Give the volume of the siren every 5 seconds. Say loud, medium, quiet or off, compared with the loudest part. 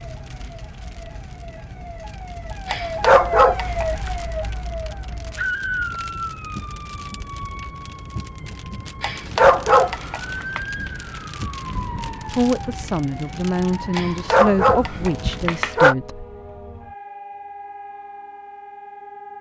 loud, loud, loud, medium.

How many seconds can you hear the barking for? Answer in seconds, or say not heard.
5 s.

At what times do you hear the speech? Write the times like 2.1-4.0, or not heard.
12.3-16.2.